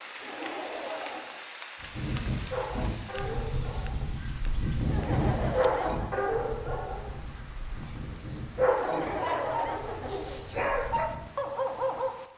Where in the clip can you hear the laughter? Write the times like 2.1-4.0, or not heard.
0.2-1.5, 4.8-6.5, 8.8-10.4.